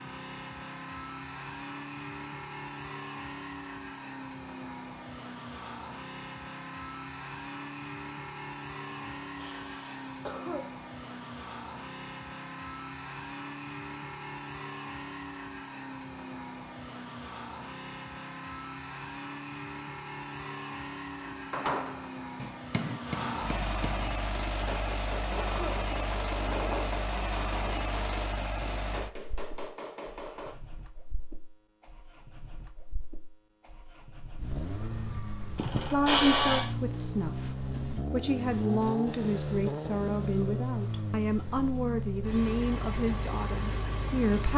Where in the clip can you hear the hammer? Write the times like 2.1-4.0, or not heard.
21.3-30.6.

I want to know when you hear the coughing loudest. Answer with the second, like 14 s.
36 s.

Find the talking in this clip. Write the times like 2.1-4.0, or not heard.
35.9-44.5.